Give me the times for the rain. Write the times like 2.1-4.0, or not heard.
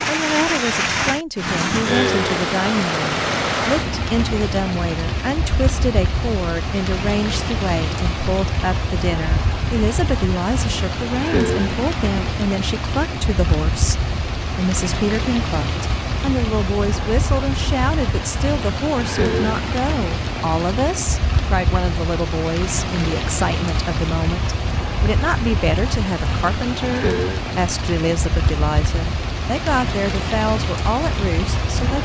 0.0-32.0.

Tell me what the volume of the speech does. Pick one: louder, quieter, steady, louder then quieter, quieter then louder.
steady.